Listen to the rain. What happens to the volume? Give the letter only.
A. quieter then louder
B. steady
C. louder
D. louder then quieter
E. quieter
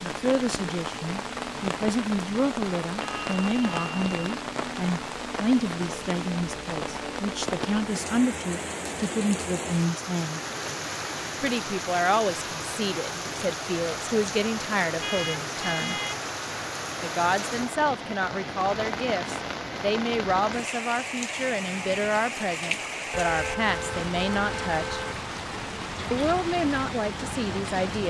B.